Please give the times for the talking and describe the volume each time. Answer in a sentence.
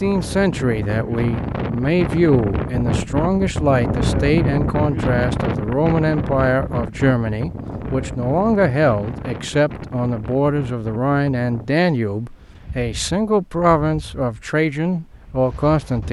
You can hear the talking from 0.0 to 16.0 s, at a steady volume.